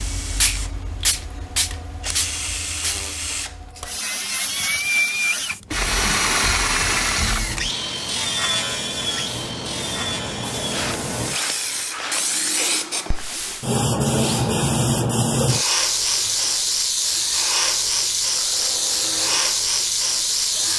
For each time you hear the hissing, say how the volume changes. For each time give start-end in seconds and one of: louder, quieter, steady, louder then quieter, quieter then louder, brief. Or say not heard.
0.0-20.7 quieter then louder.